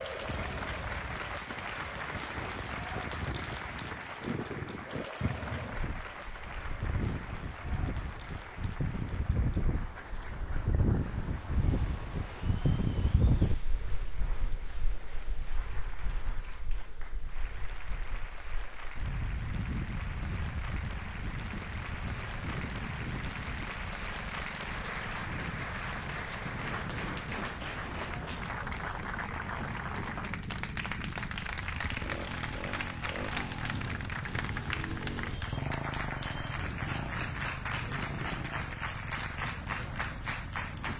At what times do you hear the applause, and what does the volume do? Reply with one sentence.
You can hear the applause from 0.0 to 40.9 s, getting quieter then louder.